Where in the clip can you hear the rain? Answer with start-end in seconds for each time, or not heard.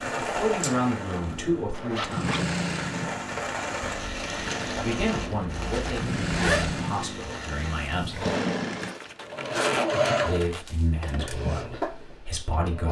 0.0-8.4.